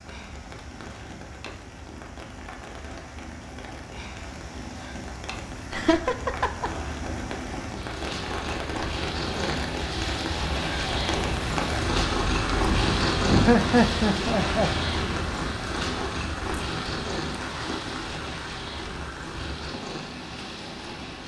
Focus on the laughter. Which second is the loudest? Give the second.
14 s.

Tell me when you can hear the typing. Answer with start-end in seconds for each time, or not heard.
not heard.